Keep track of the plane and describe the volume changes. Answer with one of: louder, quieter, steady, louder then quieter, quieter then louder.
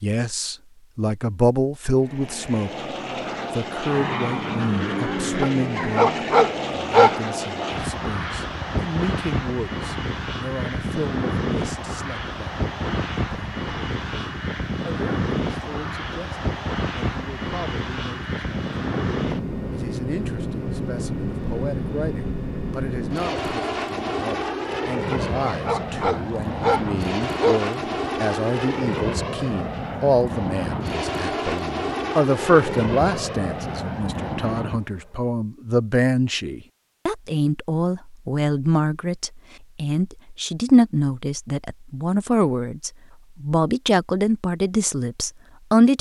steady.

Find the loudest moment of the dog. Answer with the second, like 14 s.
7 s.